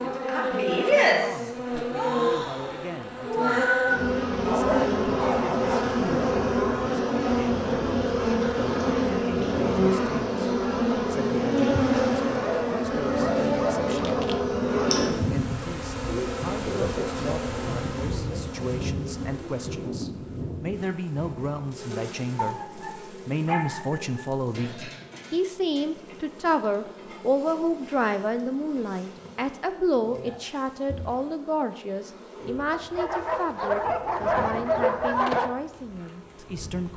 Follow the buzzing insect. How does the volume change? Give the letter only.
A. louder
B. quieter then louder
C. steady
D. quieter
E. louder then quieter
D.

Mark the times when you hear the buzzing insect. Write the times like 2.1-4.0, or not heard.
0.0-36.9.